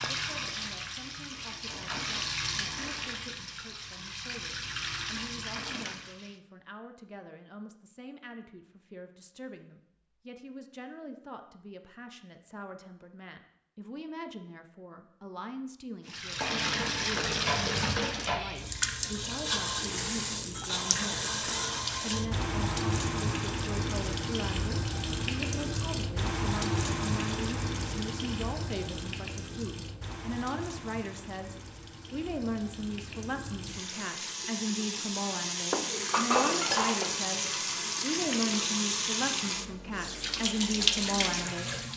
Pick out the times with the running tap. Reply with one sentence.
The running tap can be heard from 0.0 to 6.4 s and from 16.1 to 41.9 s.